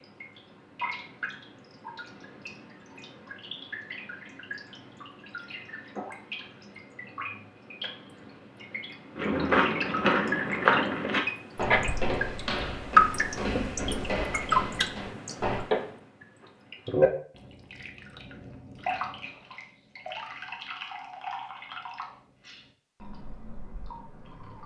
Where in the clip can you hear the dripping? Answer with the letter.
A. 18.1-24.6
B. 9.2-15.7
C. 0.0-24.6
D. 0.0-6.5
C.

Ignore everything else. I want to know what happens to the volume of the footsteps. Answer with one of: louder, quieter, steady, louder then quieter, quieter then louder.
quieter.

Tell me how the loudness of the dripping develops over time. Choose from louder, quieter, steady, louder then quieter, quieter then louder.
louder then quieter.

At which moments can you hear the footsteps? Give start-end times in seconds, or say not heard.
9.2-15.7.